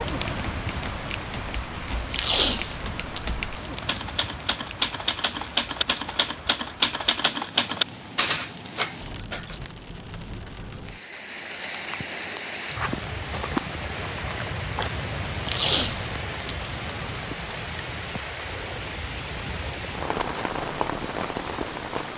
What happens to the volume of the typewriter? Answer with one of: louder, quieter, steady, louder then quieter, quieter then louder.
louder.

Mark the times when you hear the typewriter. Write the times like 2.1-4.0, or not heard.
0.1-9.6.